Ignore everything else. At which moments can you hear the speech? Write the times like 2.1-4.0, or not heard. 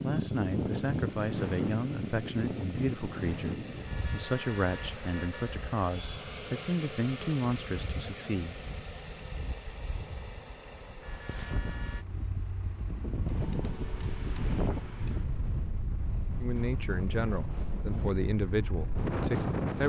0.0-8.7, 16.4-19.8.